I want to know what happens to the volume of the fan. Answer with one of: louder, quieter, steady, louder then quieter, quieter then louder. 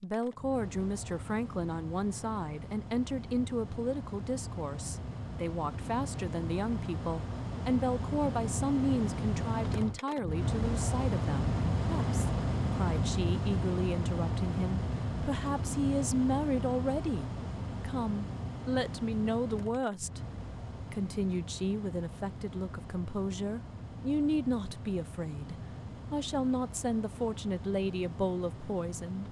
louder then quieter.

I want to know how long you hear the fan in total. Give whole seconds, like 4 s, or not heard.
29 s.